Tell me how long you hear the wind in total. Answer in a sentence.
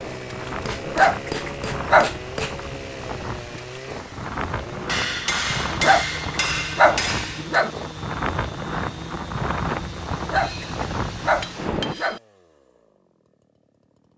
You can hear the wind for 12 seconds altogether.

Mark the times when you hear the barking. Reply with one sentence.
You can hear the barking from 0.8 to 2.1 s, from 5.8 to 7.7 s and from 10.2 to 12.2 s.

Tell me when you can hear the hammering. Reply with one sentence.
The hammering can be heard from 0.7 to 2.6 s, from 4.8 to 7.6 s and from 10.3 to 12.2 s.